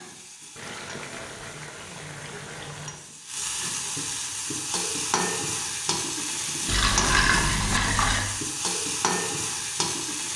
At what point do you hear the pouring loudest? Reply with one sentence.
The volume of the pouring peaks at 7 seconds.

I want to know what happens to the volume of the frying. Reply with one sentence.
The volume of the frying goes up.